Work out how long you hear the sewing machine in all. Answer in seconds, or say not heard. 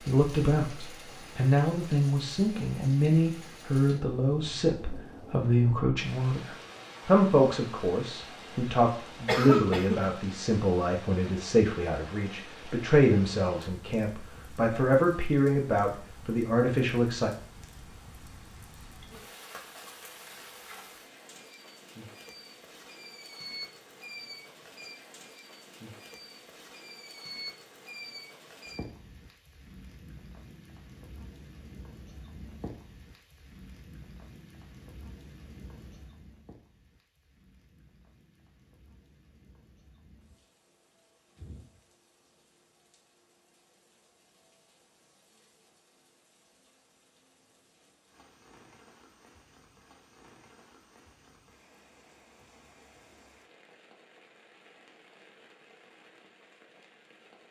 not heard.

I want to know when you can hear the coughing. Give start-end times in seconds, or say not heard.
9.2-10.1.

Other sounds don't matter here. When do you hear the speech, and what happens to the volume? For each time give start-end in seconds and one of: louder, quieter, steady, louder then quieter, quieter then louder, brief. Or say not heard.
0.0-17.3 steady.